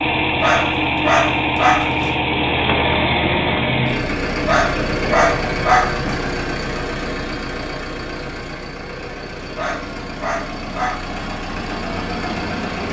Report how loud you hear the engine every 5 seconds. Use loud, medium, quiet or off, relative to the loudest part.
loud, medium, medium.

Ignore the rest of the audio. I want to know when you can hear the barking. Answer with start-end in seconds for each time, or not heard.
0.4-2.1, 4.5-6.0, 9.6-11.2.